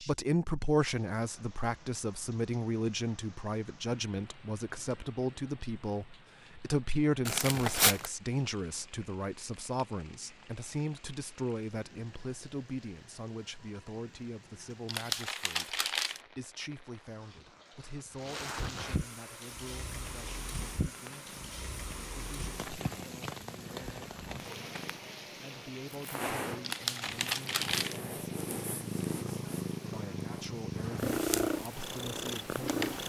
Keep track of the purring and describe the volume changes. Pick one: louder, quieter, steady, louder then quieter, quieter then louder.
louder.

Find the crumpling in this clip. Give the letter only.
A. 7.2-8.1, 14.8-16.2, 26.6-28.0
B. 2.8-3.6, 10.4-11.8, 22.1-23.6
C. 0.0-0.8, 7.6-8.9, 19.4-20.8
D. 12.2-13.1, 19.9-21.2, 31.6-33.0
A.